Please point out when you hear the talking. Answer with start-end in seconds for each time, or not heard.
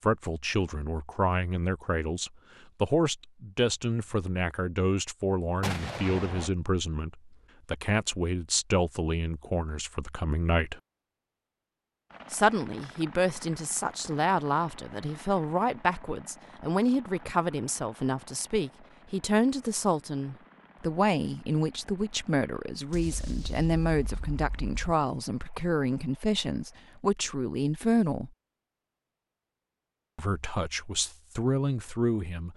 0.0-10.8, 12.3-28.3, 30.1-32.5.